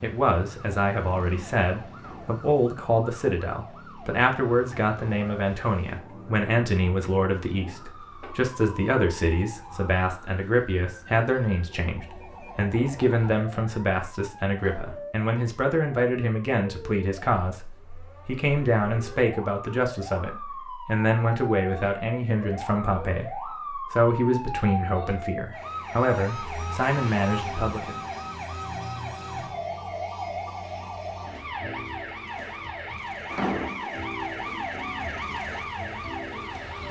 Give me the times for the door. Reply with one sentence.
You can hear the door from 1.9 to 2.4 s, from 14.6 to 15.2 s and from 33.3 to 34.0 s.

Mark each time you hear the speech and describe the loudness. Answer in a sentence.
You can hear the speech from 0.0 to 27.9 s, at a steady volume.